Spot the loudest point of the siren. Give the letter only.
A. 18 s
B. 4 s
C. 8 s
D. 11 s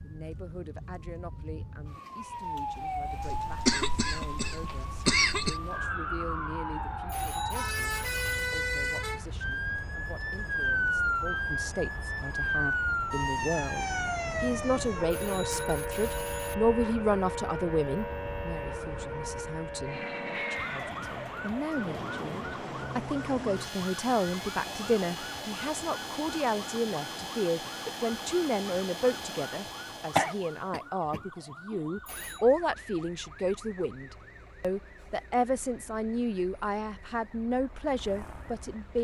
D.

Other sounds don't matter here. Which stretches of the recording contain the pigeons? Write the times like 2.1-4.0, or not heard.
not heard.